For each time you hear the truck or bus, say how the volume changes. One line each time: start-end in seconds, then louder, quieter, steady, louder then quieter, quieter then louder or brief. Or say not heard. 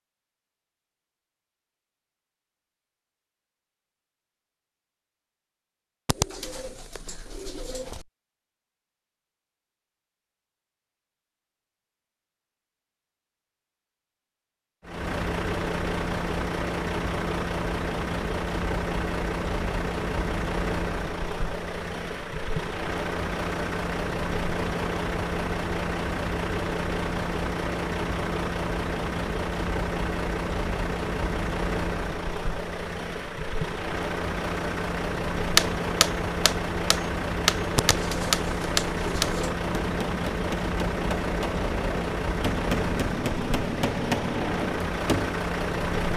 14.8-46.1 steady.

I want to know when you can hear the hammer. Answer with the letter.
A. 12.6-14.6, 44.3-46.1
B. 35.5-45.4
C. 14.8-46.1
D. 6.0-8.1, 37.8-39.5
B.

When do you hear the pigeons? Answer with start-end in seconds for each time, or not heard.
6.0-8.1, 37.8-39.5.